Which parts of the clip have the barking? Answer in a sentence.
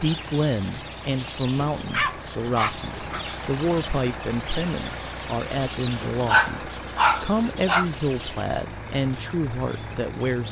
You can hear the barking from 1.8 to 3.2 s and from 6.2 to 7.8 s.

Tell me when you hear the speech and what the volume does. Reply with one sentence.
The speech can be heard from 0.0 to 10.4 s, at a steady volume.